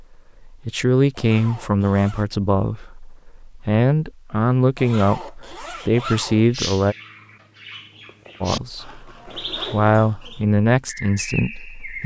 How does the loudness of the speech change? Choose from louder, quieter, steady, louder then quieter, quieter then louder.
steady.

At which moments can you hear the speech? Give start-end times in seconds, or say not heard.
0.0-7.0, 8.4-12.0.